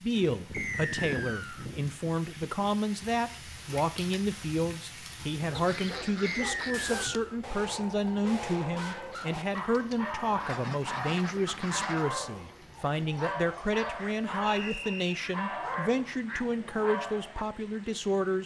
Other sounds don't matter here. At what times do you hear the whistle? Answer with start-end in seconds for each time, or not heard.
0.5-1.6, 6.2-7.2, 14.4-15.2.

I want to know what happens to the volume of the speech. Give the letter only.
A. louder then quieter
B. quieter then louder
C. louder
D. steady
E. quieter
D.